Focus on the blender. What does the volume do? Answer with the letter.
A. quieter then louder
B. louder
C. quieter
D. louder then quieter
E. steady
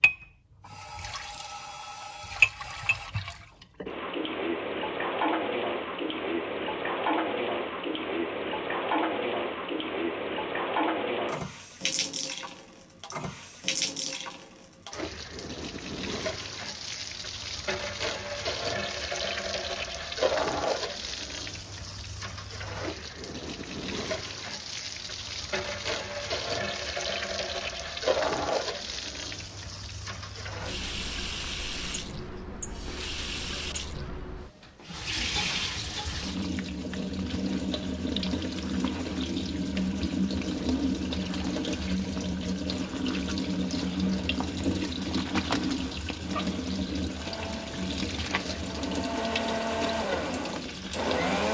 D.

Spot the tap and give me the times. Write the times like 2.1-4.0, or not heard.
0.0-51.4.